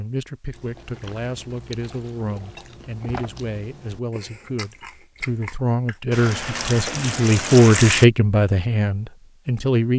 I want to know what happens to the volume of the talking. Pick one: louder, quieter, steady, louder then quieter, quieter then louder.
louder.